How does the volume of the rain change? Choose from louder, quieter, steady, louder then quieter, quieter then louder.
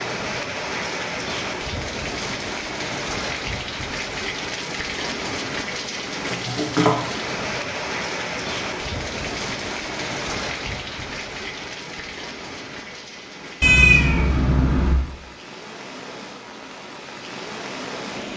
quieter.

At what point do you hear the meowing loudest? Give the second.
14 s.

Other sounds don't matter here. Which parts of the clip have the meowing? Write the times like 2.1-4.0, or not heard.
6.3-7.0, 13.6-14.9.